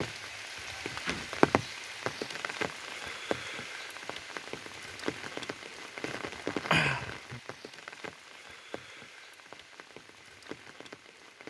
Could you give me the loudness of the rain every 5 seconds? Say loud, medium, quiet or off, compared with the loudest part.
loud, loud, quiet.